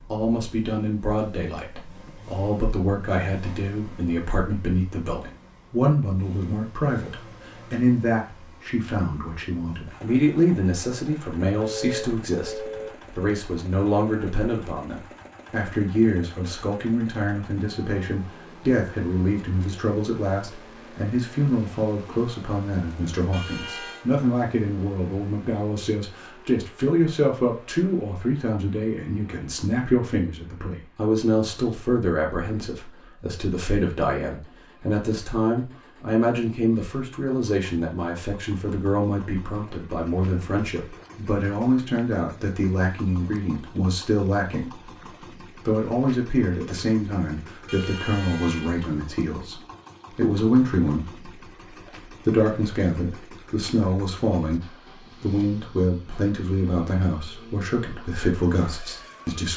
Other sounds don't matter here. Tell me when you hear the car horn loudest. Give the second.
12 s.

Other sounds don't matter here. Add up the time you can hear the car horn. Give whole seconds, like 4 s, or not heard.
3 s.